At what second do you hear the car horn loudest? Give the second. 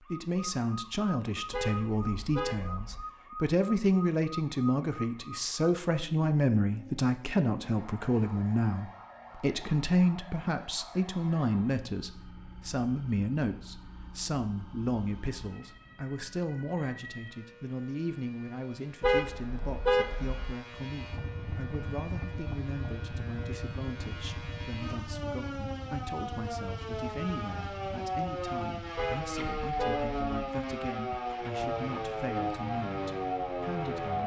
20 s.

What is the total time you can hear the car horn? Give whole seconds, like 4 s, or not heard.
4 s.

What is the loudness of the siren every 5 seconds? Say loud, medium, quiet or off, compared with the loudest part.
medium, quiet, quiet, quiet, quiet, loud, loud.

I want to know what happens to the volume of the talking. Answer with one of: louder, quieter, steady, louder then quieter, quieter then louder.
quieter.